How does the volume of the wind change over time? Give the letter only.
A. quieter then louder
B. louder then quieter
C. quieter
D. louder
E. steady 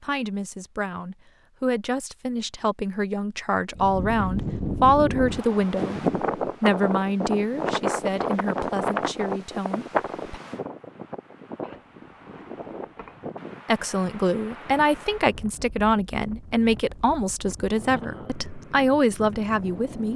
C.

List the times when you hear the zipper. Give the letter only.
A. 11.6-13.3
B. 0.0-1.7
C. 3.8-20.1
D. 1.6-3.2
A.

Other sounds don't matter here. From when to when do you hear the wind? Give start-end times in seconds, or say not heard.
3.8-20.1.